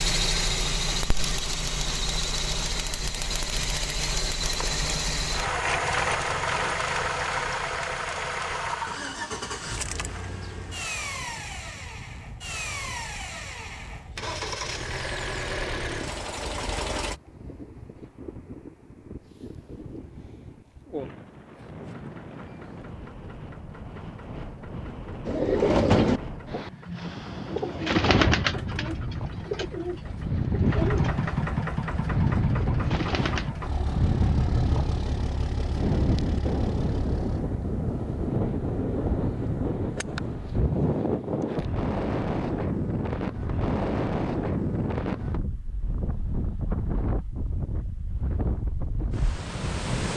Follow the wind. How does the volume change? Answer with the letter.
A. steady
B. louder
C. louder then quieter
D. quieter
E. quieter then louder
B.